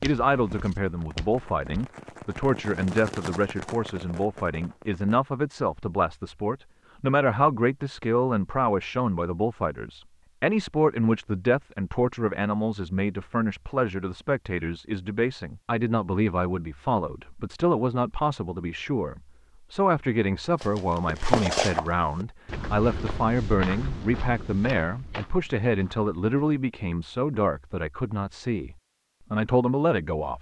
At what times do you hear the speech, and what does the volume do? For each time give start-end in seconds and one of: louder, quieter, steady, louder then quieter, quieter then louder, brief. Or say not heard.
0.0-30.3 steady.